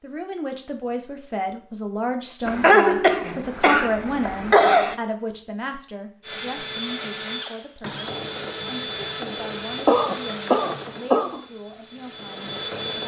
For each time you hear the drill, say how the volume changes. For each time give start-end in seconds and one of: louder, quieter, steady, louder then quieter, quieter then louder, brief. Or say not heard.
6.2-13.0 quieter.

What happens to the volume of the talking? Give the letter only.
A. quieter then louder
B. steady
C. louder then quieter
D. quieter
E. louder
D.